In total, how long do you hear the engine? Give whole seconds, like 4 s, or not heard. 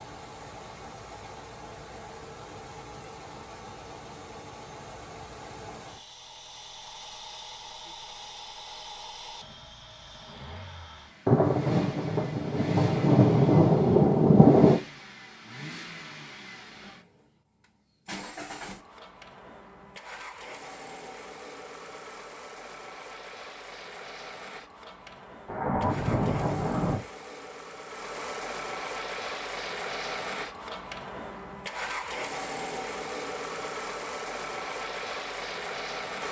36 s.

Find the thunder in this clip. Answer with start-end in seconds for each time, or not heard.
11.2-14.8, 25.4-27.0.